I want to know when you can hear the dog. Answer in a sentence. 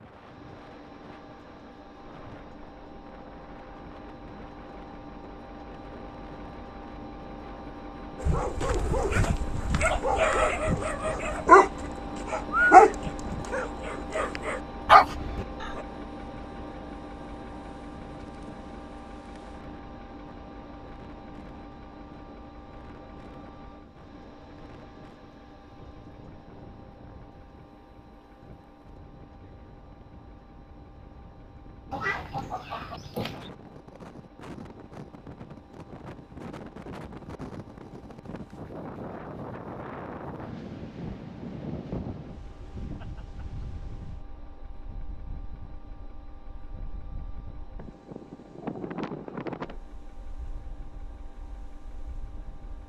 The dog can be heard from 8.2 to 15.8 s.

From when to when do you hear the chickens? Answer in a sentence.
You can hear the chickens from 31.9 to 33.5 s.